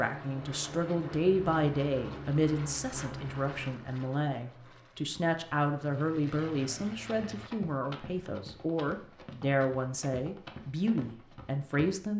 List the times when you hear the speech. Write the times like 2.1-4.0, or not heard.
0.0-12.1.